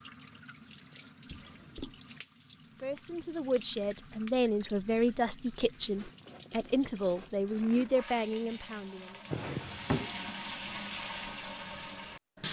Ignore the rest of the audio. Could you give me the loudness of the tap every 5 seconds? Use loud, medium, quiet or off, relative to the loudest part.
quiet, quiet, loud.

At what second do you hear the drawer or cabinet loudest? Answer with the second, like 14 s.
10 s.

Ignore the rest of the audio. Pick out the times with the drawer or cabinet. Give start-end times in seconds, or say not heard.
1.2-2.0, 9.3-10.1.